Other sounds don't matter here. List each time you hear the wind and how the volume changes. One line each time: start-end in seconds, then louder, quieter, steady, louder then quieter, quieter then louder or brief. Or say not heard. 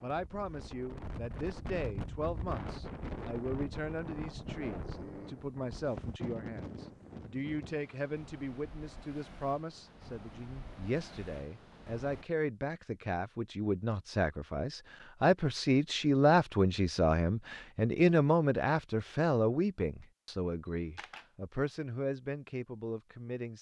0.0-12.2 quieter.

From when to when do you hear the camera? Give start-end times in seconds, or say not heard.
20.6-21.3.